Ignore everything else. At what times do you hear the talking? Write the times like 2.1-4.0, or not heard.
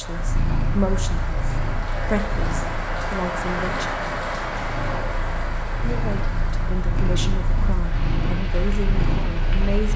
0.0-3.9, 5.8-9.9.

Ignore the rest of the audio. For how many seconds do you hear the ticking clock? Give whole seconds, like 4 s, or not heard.
not heard.